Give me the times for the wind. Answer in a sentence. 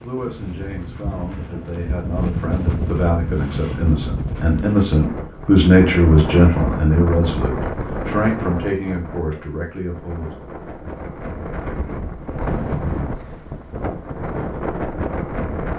You can hear the wind from 0.0 to 15.7 s.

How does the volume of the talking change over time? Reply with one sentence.
The loudness of the talking goes up, then down.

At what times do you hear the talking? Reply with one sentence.
You can hear the talking from 0.0 to 10.3 s.